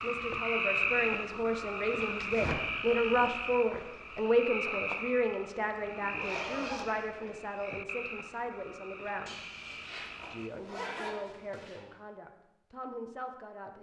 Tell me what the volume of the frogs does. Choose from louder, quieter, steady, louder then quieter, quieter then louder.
quieter.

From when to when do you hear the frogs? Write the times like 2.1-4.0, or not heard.
0.0-10.6.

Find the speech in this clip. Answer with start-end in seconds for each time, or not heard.
0.0-9.4, 10.3-13.7.